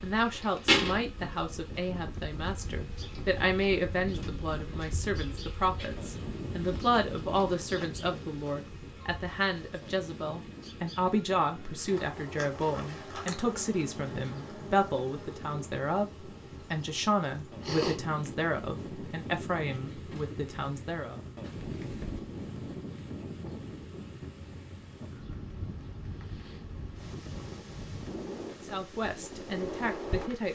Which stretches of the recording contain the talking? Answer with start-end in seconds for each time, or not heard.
0.0-16.1, 16.7-21.2, 28.7-30.5.